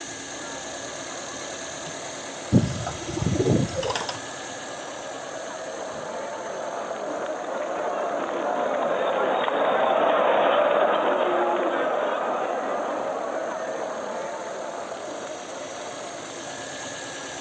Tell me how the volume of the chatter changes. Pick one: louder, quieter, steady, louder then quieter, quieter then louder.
louder then quieter.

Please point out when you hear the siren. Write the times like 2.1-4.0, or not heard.
not heard.